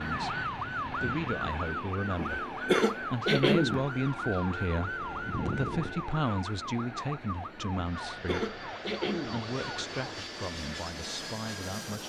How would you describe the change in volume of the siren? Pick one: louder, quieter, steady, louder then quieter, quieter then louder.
quieter.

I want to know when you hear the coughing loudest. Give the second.
3 s.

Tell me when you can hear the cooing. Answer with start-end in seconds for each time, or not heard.
not heard.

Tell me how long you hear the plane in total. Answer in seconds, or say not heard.
12 s.